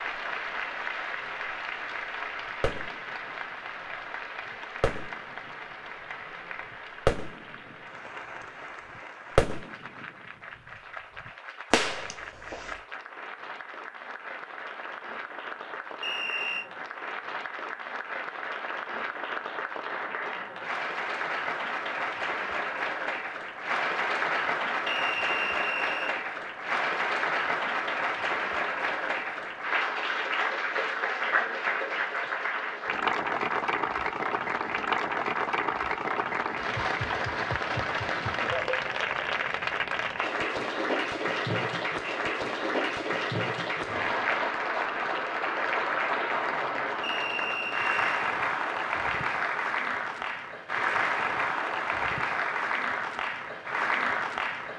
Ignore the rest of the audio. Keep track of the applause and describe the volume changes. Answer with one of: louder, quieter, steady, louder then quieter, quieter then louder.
louder.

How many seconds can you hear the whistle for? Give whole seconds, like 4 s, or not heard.
3 s.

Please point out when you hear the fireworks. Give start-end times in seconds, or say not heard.
2.6-3.3, 4.8-5.5, 7.0-7.8, 9.3-10.1, 11.2-12.8.